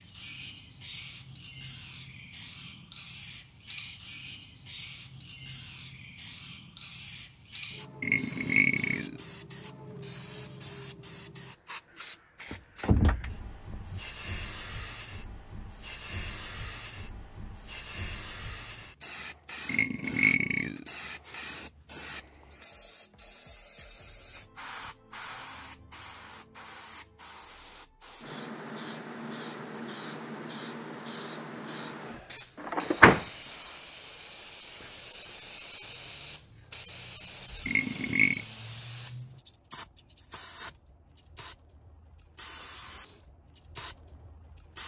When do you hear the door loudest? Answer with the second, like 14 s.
33 s.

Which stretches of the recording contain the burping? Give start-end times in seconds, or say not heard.
8.0-9.2, 19.6-21.4, 37.6-38.5.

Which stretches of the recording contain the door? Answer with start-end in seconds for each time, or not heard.
12.5-14.0, 32.7-33.7.